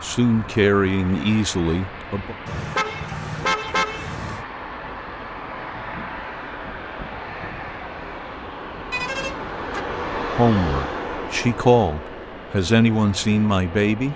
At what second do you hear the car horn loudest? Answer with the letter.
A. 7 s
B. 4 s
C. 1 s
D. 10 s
B.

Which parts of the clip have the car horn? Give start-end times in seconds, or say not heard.
2.5-4.5, 8.9-9.8.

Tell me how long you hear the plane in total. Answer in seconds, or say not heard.
14 s.